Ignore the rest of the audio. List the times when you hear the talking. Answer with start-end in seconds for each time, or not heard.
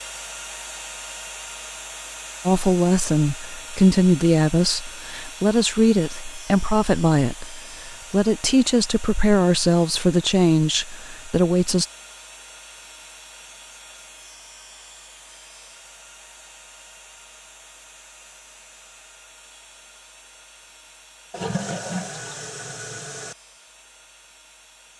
2.5-11.8.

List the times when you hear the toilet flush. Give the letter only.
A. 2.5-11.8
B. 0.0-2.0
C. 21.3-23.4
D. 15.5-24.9
C.